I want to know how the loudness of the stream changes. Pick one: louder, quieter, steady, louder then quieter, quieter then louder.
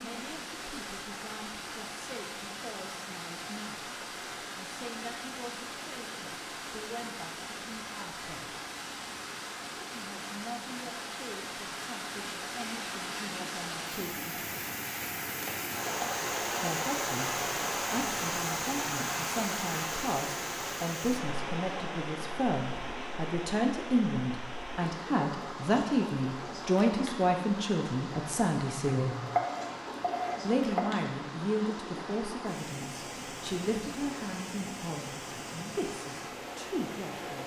louder then quieter.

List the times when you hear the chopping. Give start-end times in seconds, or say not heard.
15.4-16.6, 29.1-30.8.